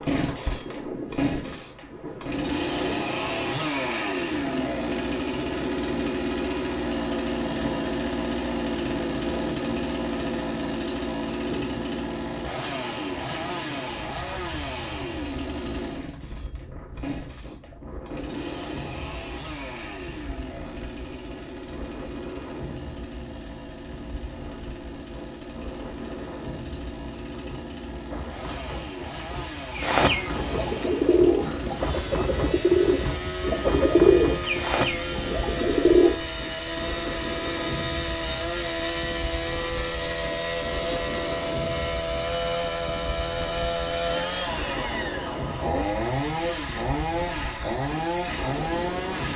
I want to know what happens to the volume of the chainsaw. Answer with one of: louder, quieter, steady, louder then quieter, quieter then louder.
quieter then louder.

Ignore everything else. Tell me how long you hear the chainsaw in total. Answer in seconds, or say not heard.
49 s.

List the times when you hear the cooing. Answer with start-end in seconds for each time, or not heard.
29.8-36.1.